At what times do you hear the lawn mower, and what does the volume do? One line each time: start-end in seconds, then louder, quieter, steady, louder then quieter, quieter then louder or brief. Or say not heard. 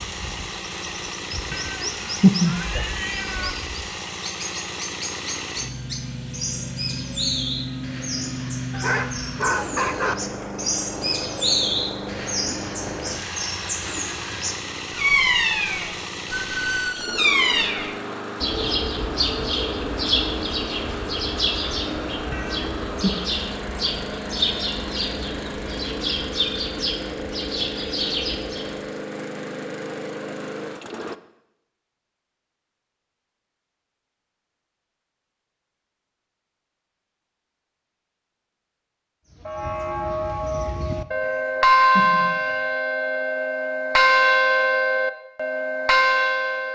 0.0-31.1 steady.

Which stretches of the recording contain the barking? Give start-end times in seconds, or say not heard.
8.7-10.2.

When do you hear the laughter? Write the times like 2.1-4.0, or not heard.
not heard.